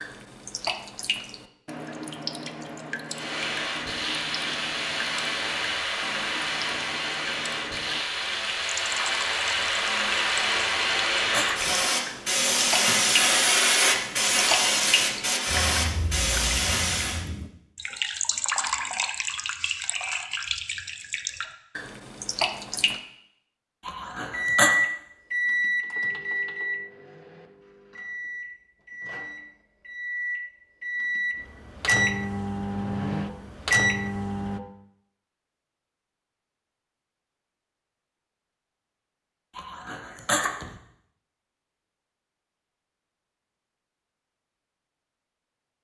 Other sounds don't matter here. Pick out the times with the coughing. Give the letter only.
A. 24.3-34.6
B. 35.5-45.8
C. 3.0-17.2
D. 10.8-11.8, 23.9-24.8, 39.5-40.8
D.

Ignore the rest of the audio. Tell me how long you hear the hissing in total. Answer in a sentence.
The hissing can be heard for 14 seconds in total.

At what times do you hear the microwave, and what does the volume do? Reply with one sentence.
You can hear the microwave from 24.3 to 34.6 s, getting quieter then louder.